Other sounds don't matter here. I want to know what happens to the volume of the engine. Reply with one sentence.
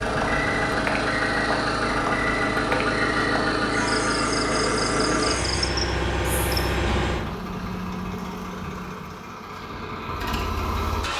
The volume of the engine goes down.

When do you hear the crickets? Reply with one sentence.
You can hear the crickets from 0.2 to 6.8 s.